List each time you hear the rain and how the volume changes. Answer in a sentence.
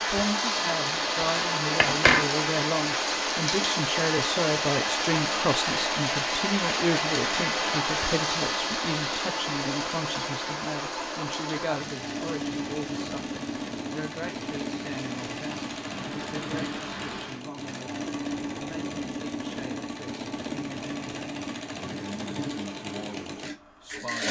You can hear the rain from 0.0 to 17.4 s, getting quieter.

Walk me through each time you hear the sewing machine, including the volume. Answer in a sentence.
The sewing machine can be heard from 0.0 to 24.2 s, at a steady volume.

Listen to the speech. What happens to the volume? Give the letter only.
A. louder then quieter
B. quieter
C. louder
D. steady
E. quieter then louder
B.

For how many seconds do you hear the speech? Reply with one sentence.
The speech can be heard for 24 seconds in total.